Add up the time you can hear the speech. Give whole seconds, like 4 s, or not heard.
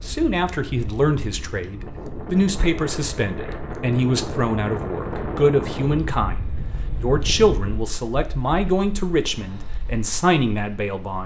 11 s.